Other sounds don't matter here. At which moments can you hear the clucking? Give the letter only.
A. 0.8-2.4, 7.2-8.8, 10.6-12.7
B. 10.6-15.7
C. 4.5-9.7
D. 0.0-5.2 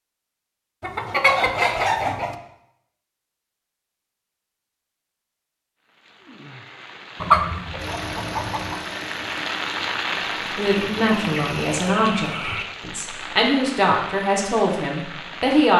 A.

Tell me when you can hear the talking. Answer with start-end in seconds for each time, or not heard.
10.6-15.7.